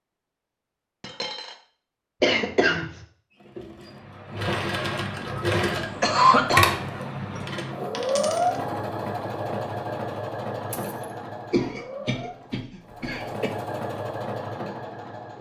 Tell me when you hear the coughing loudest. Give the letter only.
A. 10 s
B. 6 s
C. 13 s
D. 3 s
B.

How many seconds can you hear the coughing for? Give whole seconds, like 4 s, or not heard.
4 s.